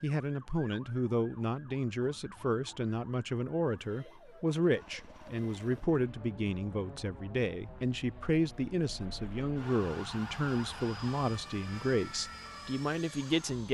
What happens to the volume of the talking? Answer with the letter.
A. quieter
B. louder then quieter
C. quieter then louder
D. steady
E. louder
D.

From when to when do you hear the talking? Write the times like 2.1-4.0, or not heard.
0.0-13.6.